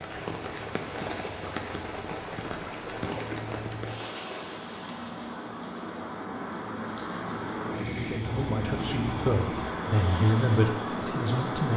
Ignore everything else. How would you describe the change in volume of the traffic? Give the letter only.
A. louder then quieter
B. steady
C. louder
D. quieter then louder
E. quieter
C.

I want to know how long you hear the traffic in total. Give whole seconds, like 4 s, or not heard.
12 s.